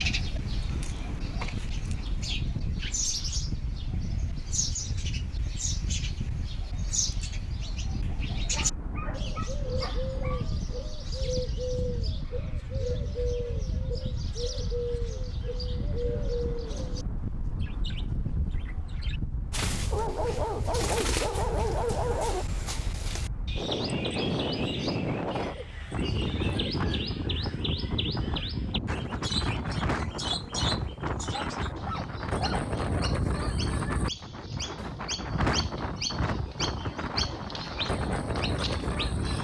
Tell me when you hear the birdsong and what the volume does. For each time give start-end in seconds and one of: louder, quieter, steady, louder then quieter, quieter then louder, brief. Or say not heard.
0.0-39.3 steady.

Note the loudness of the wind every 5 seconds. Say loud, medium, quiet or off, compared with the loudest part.
medium, medium, medium, medium, loud, loud, loud, loud.